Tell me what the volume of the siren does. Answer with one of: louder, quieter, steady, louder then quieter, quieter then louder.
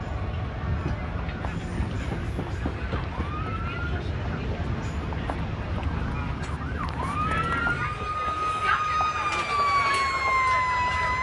louder.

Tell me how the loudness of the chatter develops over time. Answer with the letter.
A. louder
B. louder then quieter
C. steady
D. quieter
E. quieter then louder
A.